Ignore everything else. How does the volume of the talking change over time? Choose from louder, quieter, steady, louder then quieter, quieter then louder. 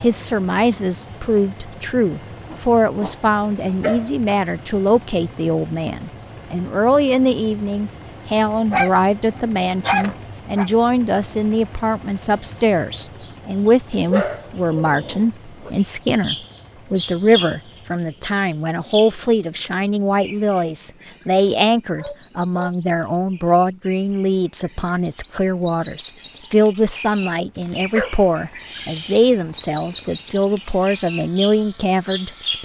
steady.